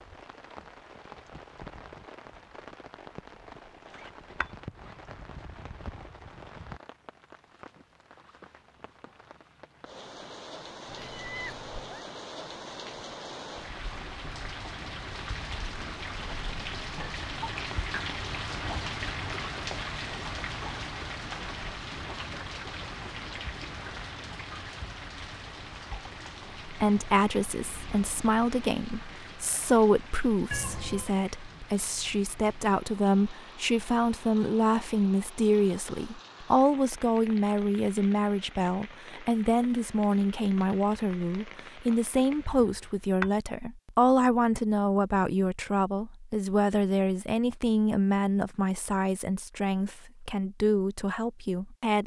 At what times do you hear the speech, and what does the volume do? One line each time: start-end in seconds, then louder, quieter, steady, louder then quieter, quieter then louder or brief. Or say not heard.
26.6-52.0 steady.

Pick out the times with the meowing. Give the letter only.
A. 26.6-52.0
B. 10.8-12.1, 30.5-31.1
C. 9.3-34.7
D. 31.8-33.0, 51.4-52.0
B.